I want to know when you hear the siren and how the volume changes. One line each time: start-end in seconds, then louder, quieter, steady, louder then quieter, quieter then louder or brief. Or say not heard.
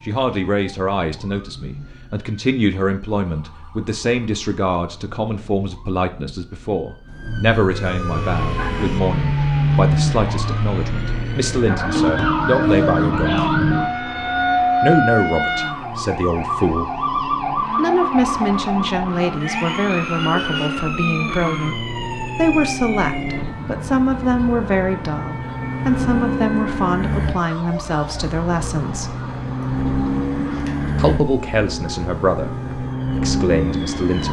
0.0-34.2 louder then quieter.